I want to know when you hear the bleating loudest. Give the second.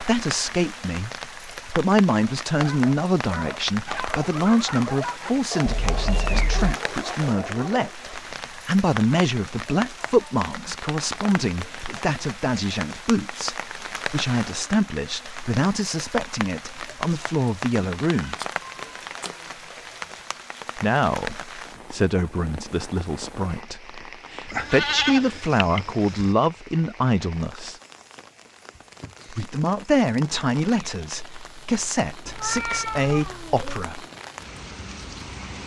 25 s.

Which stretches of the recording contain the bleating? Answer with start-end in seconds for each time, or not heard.
24.4-26.4.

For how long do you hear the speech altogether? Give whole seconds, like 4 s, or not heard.
30 s.